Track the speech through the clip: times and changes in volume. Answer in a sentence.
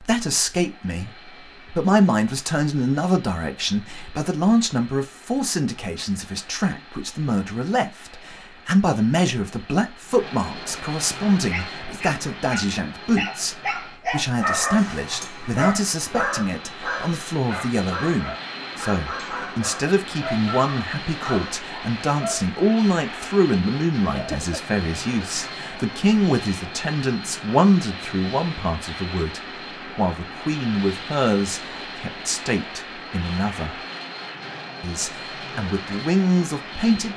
The speech can be heard from 0.0 to 33.8 s, at a steady volume; and briefly from 34.8 to 37.1 s.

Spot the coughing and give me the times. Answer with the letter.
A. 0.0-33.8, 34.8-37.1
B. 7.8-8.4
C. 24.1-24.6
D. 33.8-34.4
C.